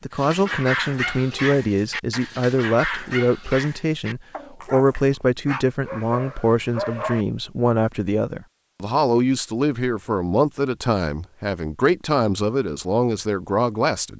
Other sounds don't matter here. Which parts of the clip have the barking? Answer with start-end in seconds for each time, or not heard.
0.1-4.8, 5.5-7.2.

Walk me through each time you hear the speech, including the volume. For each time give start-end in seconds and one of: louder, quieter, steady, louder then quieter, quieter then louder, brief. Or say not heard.
0.0-14.1 steady.